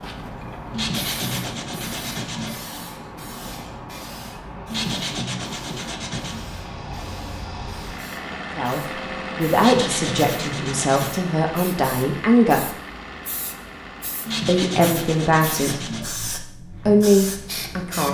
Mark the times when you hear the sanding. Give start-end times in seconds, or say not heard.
0.7-2.5, 4.7-6.5, 9.6-11.2, 14.2-16.1.